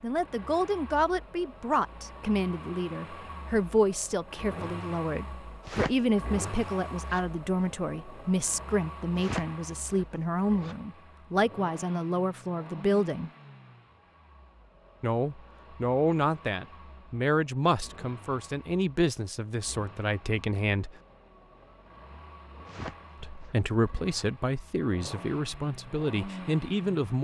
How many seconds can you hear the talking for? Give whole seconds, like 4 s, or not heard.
23 s.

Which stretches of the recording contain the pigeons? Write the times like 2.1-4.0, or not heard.
not heard.